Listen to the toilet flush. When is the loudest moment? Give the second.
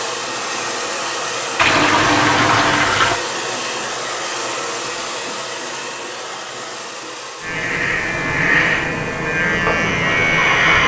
2 s.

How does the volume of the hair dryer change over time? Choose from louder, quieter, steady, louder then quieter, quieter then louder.
quieter.